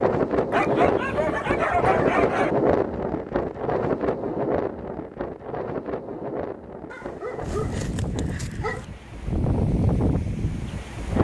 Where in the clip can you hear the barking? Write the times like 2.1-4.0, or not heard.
0.5-2.5, 6.9-8.8.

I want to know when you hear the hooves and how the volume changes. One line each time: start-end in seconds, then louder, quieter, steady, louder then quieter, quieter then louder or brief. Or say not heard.
not heard.